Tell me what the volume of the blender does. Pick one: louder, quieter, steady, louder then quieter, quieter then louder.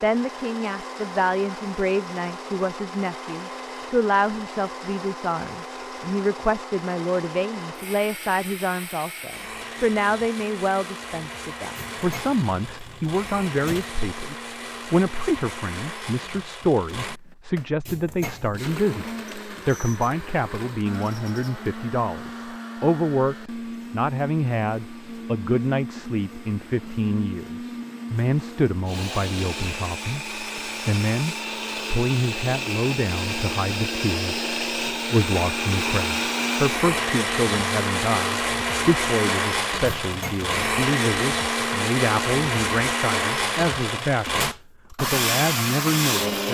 louder.